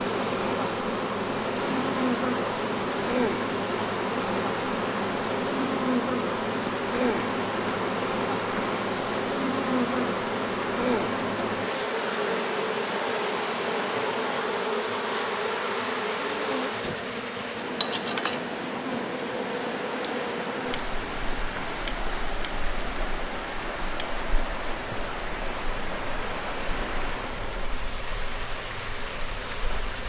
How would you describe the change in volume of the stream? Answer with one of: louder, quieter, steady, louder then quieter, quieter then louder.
steady.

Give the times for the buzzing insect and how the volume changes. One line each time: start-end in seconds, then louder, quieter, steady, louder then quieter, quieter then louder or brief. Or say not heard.
0.0-30.0 quieter.